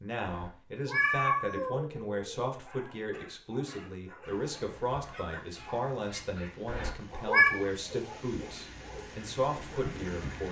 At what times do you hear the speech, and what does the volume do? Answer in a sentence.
You can hear the speech from 0.0 to 10.4 s, at a steady volume.